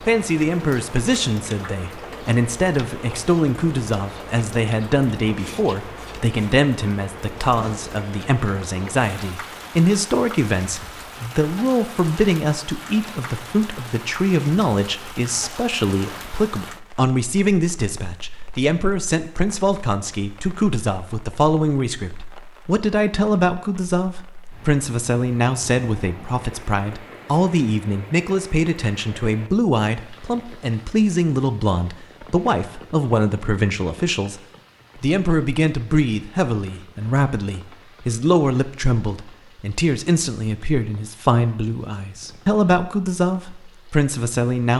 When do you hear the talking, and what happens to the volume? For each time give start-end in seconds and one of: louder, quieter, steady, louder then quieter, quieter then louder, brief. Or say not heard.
0.0-44.7 steady.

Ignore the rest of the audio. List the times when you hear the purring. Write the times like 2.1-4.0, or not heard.
not heard.